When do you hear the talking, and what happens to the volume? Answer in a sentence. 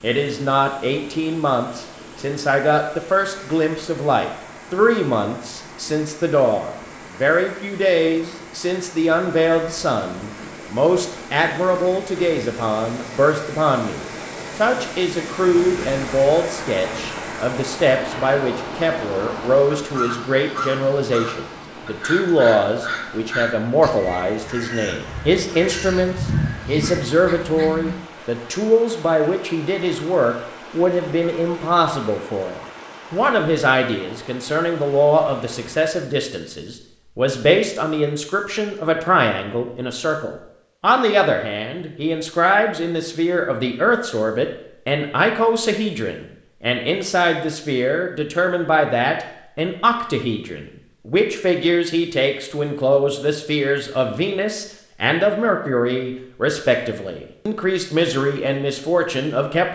You can hear the talking from 0.0 to 59.7 s, at a steady volume.